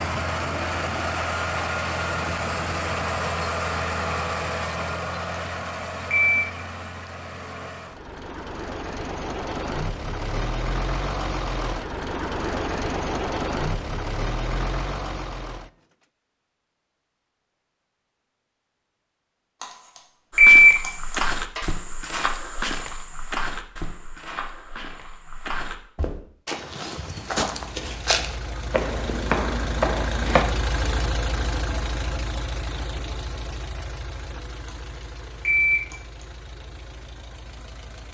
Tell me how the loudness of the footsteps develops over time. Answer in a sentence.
The loudness of the footsteps goes down, then up.